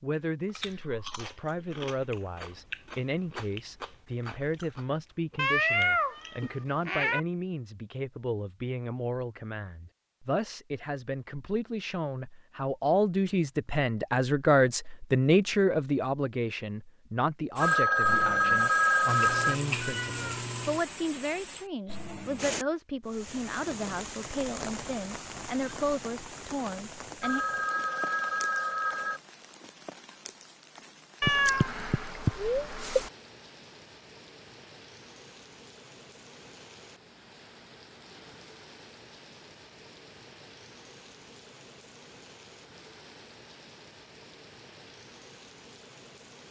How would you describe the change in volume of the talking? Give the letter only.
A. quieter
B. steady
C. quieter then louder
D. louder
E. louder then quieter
E.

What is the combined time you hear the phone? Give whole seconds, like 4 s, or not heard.
4 s.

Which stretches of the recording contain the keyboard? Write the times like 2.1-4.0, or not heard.
not heard.